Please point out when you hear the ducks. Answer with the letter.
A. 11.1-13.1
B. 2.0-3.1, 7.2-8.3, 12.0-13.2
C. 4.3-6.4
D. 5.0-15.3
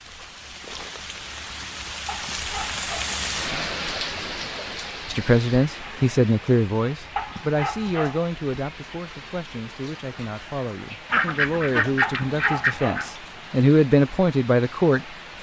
A.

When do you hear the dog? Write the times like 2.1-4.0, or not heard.
2.0-3.1, 7.2-8.3, 12.0-13.2.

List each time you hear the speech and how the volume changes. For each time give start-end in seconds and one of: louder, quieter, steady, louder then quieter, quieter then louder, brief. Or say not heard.
5.0-15.3 quieter then louder.